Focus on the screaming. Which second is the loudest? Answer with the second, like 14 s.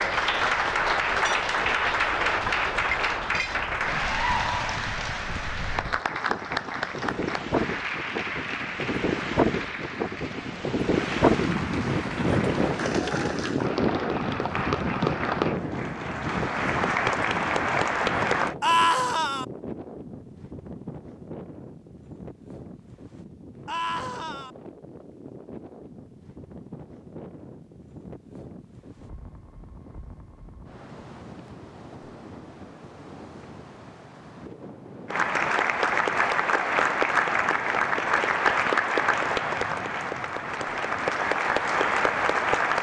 19 s.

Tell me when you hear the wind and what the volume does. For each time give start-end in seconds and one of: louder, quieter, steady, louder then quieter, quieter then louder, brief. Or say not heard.
0.0-42.7 louder then quieter.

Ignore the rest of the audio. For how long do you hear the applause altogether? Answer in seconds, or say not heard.
26 s.